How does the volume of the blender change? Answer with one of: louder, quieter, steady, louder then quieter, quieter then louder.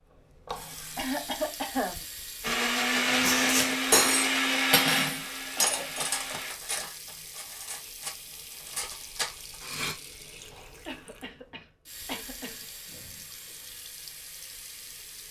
quieter.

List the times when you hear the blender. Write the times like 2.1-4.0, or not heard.
2.4-6.5.